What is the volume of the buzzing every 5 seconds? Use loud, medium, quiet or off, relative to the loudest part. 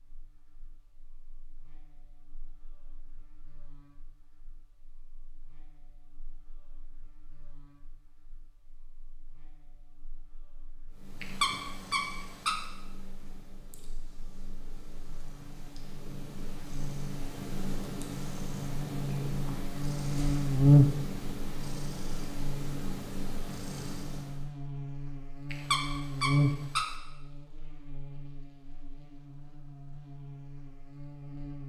quiet, quiet, quiet, quiet, loud, medium, quiet.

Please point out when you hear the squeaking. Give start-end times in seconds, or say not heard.
11.2-12.6, 25.5-26.9.